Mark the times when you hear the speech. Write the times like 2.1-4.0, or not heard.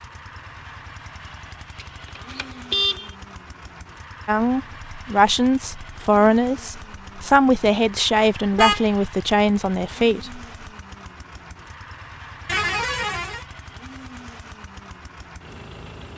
4.2-10.4.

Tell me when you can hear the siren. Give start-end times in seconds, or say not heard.
not heard.